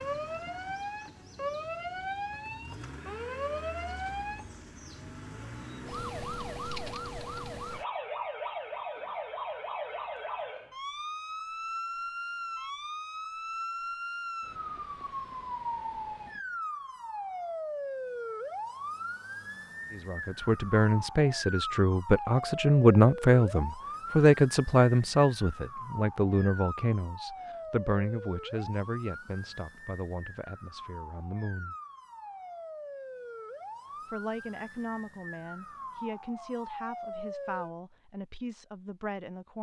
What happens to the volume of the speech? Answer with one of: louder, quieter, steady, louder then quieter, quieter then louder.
quieter.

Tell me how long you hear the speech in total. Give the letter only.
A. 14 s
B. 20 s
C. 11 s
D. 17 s
D.